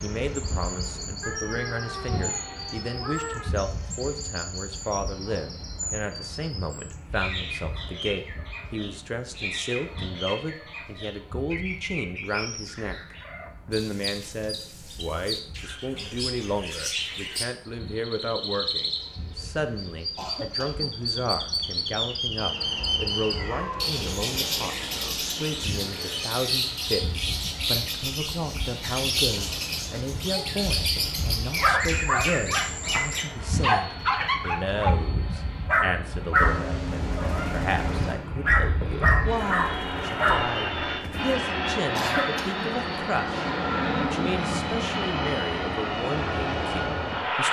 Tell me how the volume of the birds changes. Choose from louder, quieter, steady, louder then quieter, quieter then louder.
louder.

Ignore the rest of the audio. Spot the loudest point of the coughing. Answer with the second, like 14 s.
42 s.